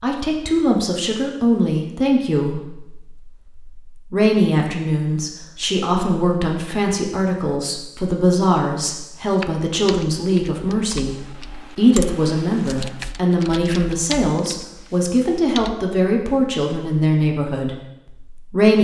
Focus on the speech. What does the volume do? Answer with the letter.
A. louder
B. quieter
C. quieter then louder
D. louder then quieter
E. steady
E.